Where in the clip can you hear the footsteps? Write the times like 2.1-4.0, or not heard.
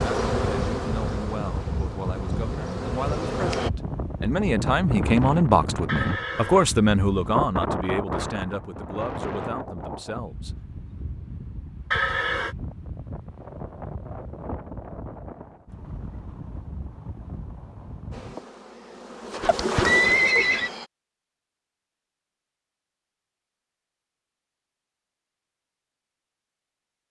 not heard.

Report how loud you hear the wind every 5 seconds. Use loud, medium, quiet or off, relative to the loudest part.
loud, loud, medium, medium, off, off.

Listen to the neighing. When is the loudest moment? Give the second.
20 s.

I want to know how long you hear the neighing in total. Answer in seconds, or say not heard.
2 s.